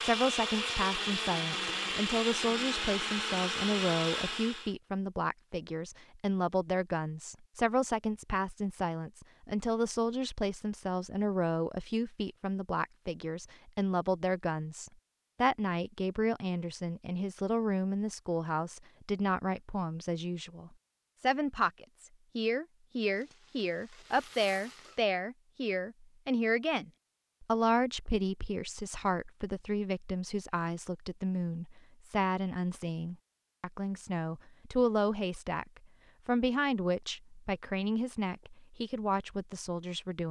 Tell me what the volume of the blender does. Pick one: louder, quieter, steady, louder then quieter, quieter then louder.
steady.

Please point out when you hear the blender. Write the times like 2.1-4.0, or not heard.
0.0-4.8.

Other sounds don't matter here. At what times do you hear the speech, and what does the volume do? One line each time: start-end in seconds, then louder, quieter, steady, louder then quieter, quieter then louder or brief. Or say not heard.
0.0-40.2 steady.